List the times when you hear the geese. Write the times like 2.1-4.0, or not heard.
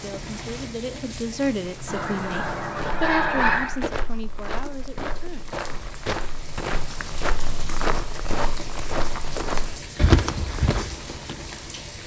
1.9-3.8.